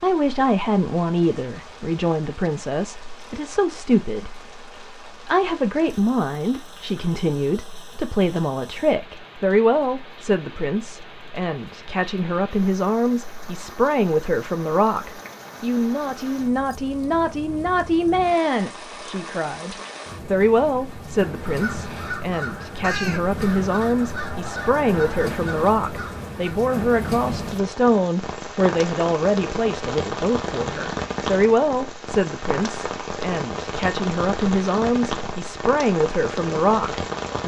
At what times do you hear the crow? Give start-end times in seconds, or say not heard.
21.4-26.4.